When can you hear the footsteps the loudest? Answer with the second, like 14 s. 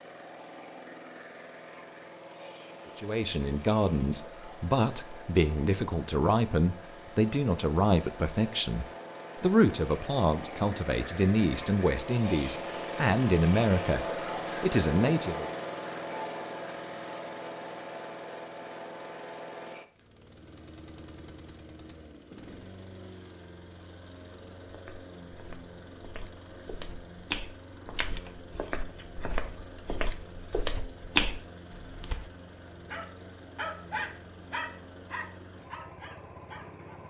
31 s.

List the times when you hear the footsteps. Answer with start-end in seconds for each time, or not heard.
24.6-32.3.